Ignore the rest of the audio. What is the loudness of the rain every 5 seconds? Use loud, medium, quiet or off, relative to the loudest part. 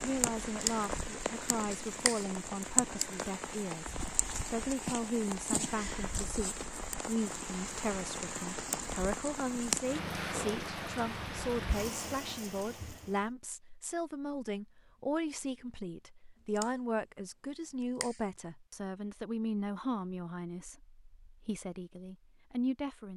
loud, loud, loud, off, off.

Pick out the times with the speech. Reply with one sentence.
The speech can be heard from 0.0 to 23.1 s.